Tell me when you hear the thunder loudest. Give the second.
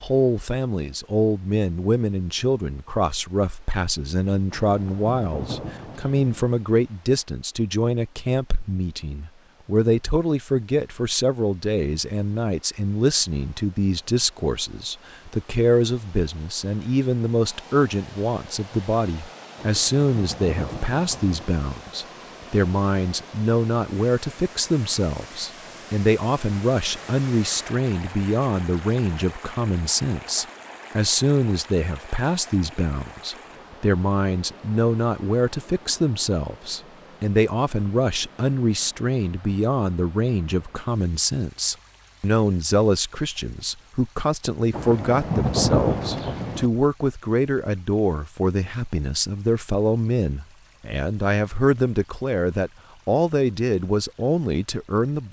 46 s.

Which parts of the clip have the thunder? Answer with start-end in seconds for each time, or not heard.
4.5-6.5, 19.6-21.6, 44.7-46.7.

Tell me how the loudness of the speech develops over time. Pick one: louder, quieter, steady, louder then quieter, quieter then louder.
steady.